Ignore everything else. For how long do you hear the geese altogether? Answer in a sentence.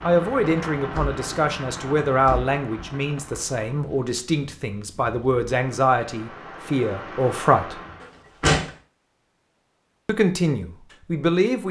The geese can't be heard in this clip.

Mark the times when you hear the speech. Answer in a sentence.
The speech can be heard from 0.0 to 7.8 s and from 10.1 to 11.6 s.